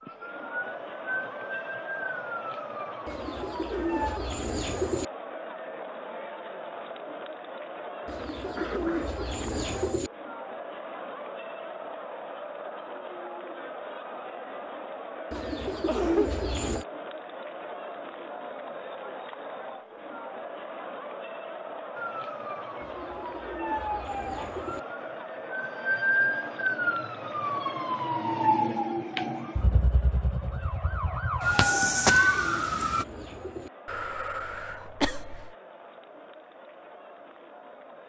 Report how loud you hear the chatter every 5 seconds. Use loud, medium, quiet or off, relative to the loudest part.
loud, loud, loud, loud, loud, loud, medium, medium.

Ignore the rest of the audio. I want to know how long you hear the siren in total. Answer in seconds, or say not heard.
15 s.